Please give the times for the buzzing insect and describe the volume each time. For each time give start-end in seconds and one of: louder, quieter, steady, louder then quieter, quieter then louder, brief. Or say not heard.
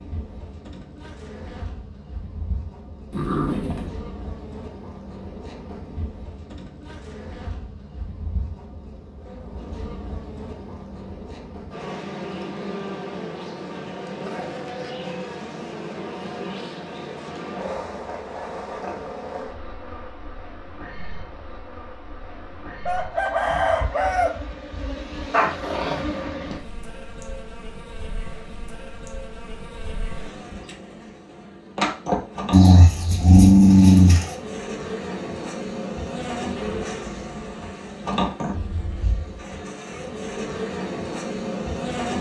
0.0-42.1 louder.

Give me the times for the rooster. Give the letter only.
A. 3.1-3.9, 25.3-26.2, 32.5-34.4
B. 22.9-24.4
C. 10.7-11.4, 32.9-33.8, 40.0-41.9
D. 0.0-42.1
B.